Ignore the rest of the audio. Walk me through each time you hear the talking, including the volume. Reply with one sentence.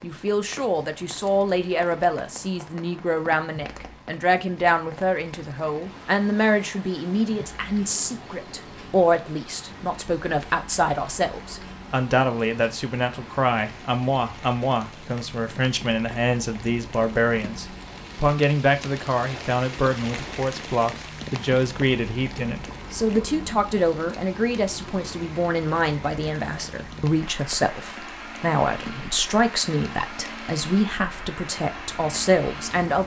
You can hear the talking from 0.0 to 33.0 s, at a steady volume.